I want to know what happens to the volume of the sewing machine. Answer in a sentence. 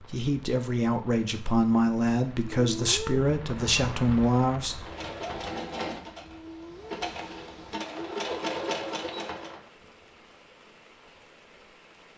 The loudness of the sewing machine goes down, then up.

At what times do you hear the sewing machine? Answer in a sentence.
The sewing machine can be heard from 4.8 to 9.6 s.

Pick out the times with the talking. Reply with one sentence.
The talking can be heard from 0.0 to 4.8 s.